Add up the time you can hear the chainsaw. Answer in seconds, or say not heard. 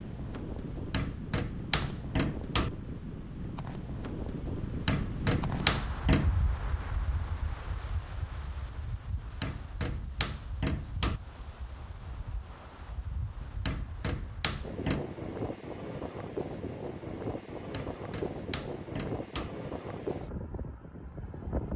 not heard.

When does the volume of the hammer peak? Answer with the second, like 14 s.
6 s.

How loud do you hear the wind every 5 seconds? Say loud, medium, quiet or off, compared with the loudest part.
loud, loud, medium, loud, loud.